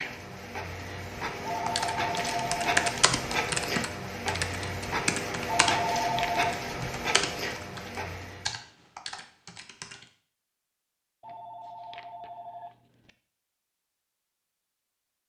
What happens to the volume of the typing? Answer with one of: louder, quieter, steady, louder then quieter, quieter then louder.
quieter.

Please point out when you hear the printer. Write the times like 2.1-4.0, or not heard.
0.0-8.6.